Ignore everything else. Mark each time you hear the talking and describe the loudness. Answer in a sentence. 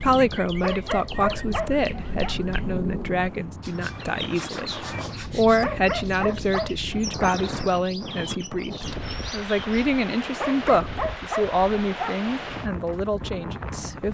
The talking can be heard from 0.0 to 14.0 s, at a steady volume.